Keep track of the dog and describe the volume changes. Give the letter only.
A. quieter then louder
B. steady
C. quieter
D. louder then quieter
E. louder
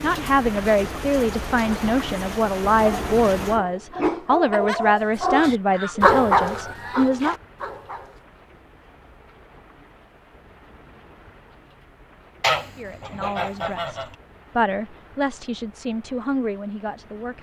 D.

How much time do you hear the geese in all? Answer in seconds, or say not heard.
4 s.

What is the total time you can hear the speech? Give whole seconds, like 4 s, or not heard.
12 s.